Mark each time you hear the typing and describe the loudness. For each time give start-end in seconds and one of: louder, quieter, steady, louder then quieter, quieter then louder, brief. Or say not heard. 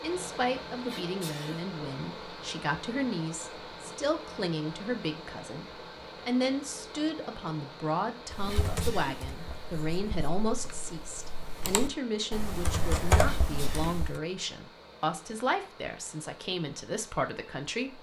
8.3-14.2 quieter then louder.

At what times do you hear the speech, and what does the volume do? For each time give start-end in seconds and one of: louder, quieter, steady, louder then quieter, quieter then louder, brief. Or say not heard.
0.0-17.9 steady.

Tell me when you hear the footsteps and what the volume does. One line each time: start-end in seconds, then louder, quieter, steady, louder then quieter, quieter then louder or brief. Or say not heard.
not heard.